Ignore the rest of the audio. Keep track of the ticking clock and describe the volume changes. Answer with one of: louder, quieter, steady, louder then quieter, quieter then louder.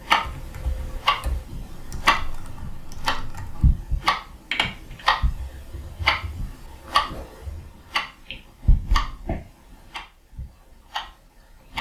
quieter.